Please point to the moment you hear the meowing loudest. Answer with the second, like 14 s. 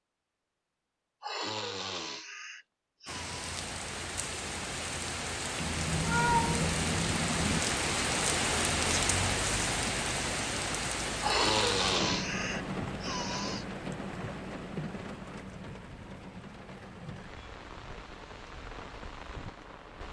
6 s.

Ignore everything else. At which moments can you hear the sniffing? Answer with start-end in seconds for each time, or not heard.
1.2-3.6, 11.2-13.7.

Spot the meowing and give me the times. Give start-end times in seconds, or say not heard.
5.6-7.6.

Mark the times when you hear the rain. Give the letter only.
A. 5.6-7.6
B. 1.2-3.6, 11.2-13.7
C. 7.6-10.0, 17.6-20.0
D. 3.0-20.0
D.